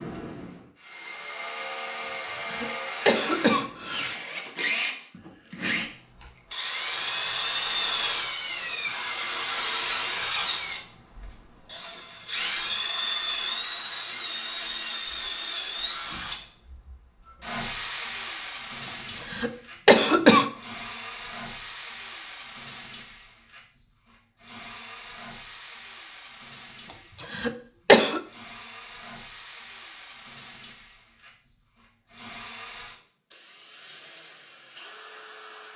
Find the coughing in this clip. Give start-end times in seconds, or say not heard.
2.0-4.1, 18.9-20.4, 26.9-28.2.